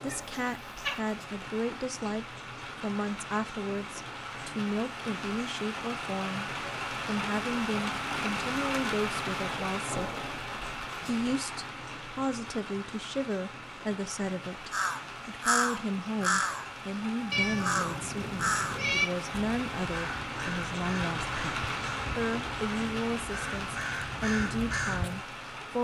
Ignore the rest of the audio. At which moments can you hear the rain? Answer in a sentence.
The rain can be heard from 0.0 to 25.7 s.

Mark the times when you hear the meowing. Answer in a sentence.
You can hear the meowing from 0.1 to 1.0 s and from 17.3 to 19.1 s.